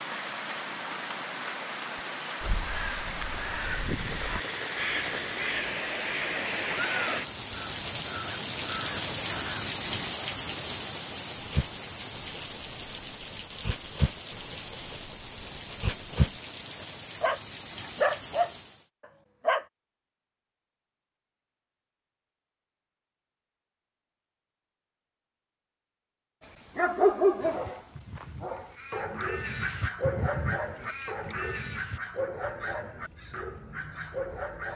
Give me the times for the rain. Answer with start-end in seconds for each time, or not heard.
0.0-18.9.